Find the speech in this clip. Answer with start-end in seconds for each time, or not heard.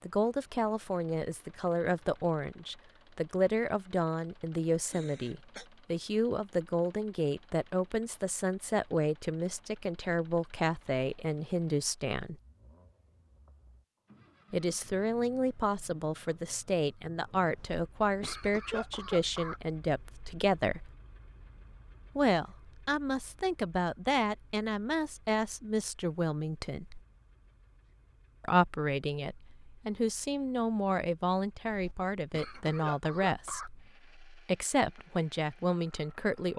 0.0-12.3, 14.5-20.9, 22.1-27.0, 28.4-36.5.